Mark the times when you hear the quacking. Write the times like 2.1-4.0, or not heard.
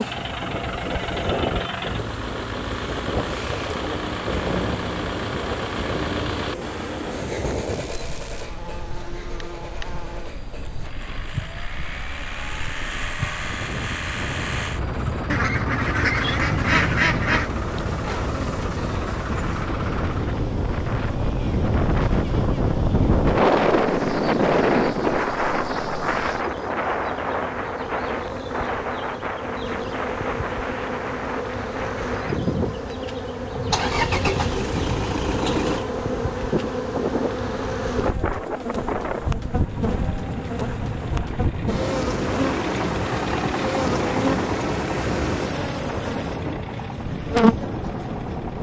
15.3-17.5.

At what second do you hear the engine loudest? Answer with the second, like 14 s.
34 s.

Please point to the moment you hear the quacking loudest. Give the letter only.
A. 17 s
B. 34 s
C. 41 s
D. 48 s
A.